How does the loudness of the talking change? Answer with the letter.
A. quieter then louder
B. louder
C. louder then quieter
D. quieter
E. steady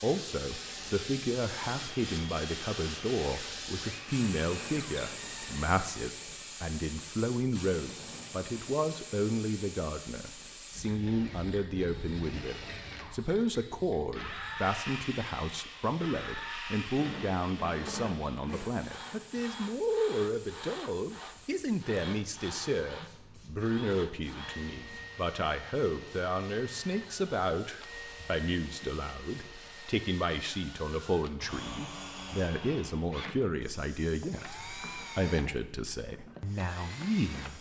E.